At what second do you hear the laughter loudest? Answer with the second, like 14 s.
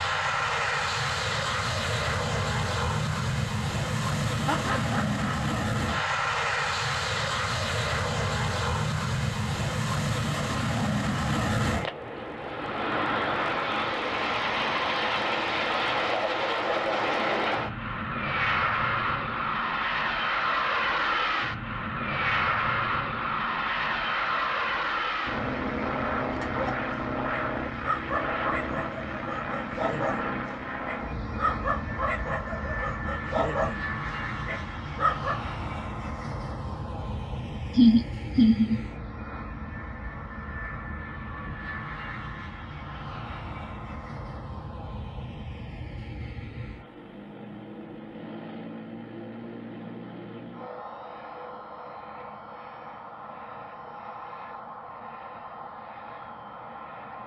38 s.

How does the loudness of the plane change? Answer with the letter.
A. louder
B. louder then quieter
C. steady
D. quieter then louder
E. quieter
E.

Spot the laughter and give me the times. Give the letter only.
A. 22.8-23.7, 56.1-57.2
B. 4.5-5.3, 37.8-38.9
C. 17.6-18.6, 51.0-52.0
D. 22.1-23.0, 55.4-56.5
B.